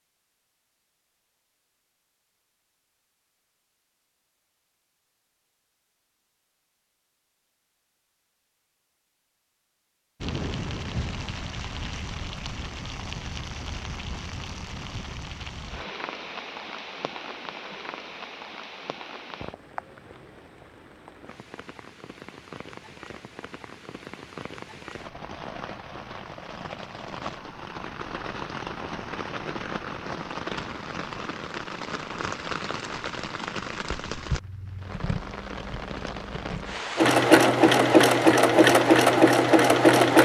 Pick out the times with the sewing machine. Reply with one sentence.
You can hear the sewing machine from 37.0 to 40.1 s.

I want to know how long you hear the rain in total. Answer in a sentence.
The rain can be heard for 30 seconds in total.